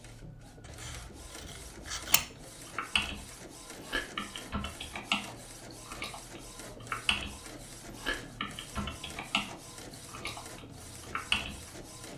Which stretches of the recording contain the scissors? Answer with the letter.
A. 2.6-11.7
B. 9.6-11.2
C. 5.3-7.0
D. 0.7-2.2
D.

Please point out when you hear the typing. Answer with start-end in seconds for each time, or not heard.
2.6-11.7.